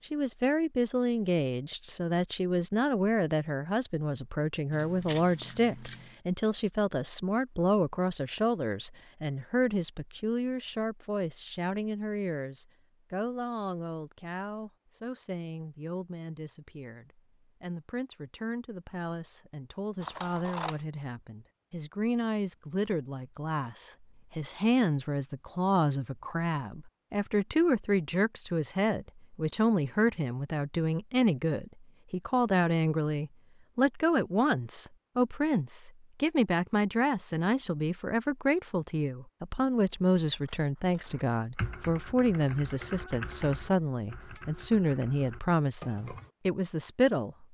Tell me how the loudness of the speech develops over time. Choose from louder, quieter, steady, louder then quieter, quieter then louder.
quieter then louder.